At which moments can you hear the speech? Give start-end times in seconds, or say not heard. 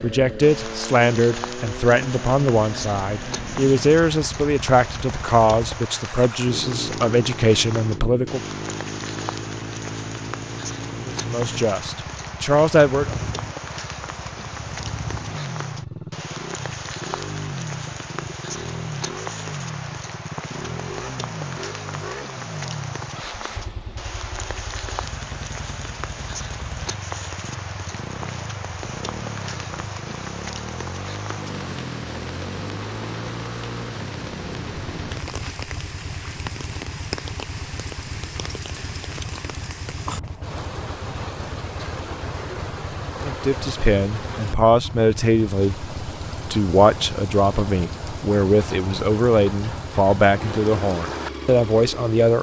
0.0-8.4, 11.1-13.3, 43.2-52.3.